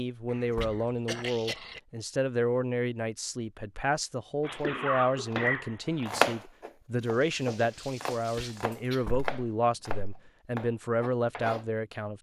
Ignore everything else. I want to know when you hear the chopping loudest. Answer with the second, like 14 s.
6 s.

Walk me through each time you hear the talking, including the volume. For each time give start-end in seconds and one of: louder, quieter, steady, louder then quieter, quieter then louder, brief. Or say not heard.
0.0-12.1 steady.